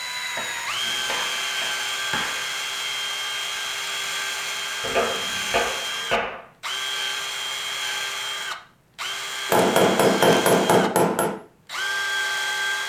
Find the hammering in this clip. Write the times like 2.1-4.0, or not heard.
0.3-2.5, 4.8-6.5, 9.4-11.3.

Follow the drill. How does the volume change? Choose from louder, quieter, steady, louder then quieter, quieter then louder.
steady.